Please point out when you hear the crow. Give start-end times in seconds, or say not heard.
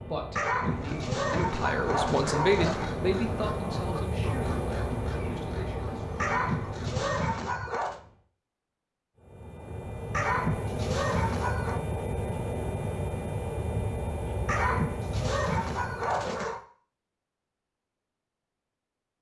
0.6-7.3.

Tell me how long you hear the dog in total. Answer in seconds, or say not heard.
8 s.